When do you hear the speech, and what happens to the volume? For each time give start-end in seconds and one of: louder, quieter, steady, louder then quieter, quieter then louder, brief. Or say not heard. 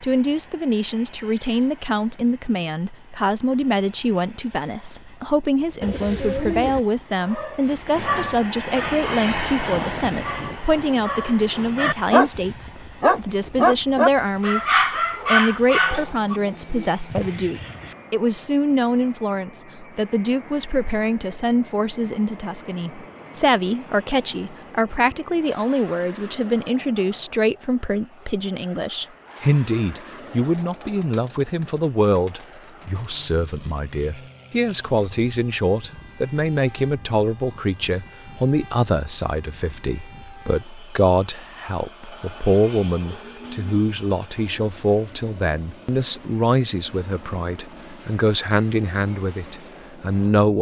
0.0-50.5 steady.